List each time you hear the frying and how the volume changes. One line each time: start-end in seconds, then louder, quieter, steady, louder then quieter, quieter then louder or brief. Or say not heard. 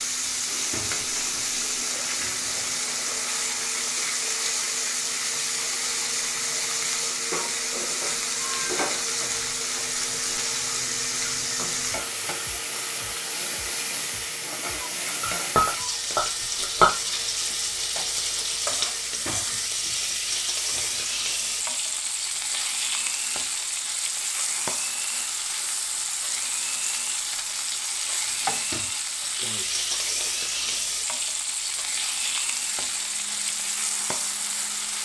0.0-35.0 steady.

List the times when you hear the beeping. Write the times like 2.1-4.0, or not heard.
not heard.